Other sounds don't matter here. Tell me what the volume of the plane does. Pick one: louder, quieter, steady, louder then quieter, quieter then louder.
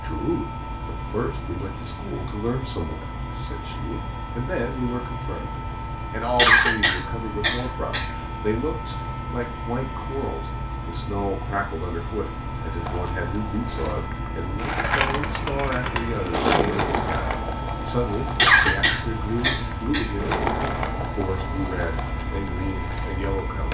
steady.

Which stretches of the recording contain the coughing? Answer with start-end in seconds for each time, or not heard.
6.3-8.1, 18.4-20.1.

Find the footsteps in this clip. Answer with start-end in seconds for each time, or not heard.
not heard.